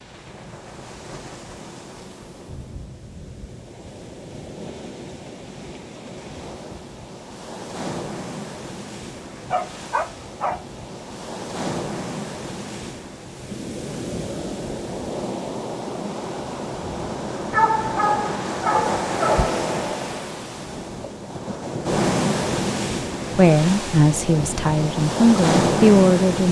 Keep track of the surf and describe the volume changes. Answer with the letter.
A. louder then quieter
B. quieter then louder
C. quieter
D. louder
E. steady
D.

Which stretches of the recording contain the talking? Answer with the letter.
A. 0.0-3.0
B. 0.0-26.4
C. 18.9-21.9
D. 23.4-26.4
D.